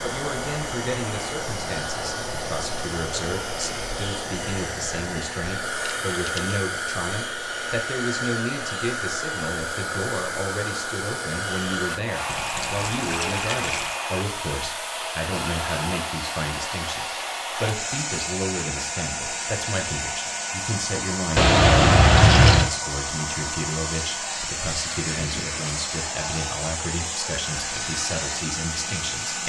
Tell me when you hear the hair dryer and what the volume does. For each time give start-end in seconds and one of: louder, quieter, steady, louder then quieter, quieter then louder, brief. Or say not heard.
0.0-29.4 steady.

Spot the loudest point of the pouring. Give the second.
22 s.